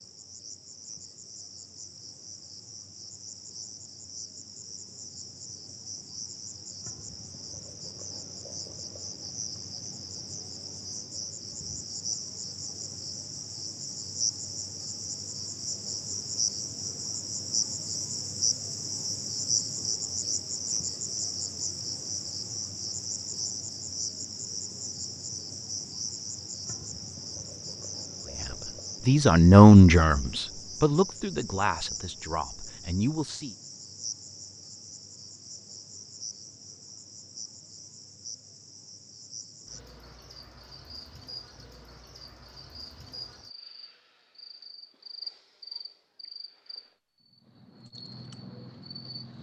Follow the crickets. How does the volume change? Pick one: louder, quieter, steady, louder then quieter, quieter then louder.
louder then quieter.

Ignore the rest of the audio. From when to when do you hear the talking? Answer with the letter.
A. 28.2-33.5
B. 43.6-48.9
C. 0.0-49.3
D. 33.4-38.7
A.